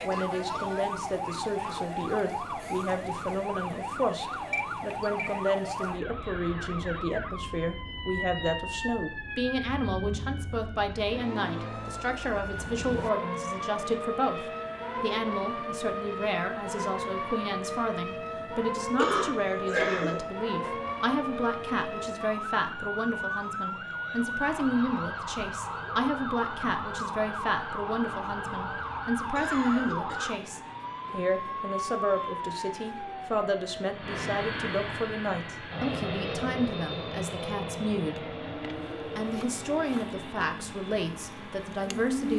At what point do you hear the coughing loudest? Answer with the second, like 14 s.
20 s.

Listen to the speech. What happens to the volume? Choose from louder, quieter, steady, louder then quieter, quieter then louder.
steady.